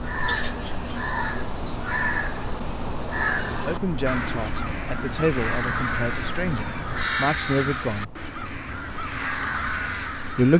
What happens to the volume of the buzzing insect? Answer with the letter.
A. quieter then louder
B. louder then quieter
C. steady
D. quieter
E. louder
D.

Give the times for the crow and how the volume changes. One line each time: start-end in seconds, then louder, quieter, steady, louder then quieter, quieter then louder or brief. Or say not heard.
0.0-10.5 steady.